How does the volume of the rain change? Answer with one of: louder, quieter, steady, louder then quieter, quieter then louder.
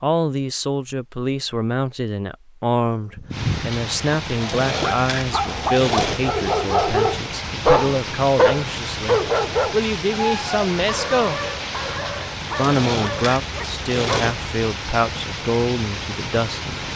steady.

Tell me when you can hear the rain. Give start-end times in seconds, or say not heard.
3.3-16.9.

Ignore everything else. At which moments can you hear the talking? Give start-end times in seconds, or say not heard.
0.0-11.4, 12.6-16.9.